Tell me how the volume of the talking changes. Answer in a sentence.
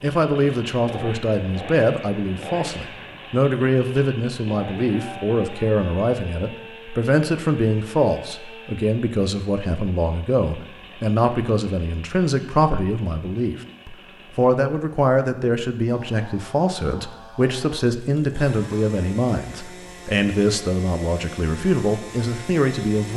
The volume of the talking stays about the same.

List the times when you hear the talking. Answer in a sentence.
You can hear the talking from 0.0 to 23.1 s.